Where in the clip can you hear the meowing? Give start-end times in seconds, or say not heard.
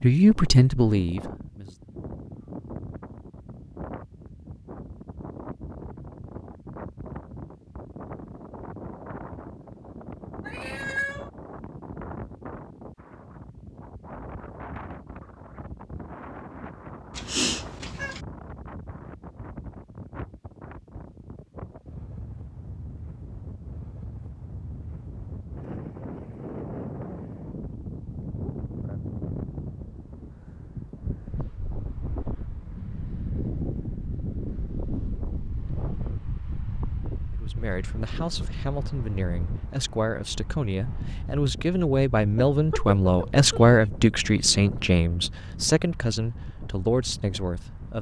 10.4-11.3, 17.1-18.2, 42.4-43.8.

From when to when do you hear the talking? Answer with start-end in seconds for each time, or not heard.
0.0-1.8, 37.4-47.9.